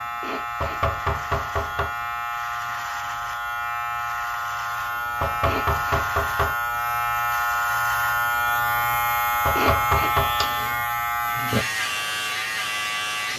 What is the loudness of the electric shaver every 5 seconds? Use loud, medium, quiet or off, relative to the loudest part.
medium, loud, loud.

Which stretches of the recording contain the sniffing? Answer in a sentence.
The sniffing can be heard from 0.2 to 0.8 s, from 5.5 to 6.0 s and from 9.6 to 10.2 s.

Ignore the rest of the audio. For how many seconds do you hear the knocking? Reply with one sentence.
The knocking can be heard for 4 seconds in total.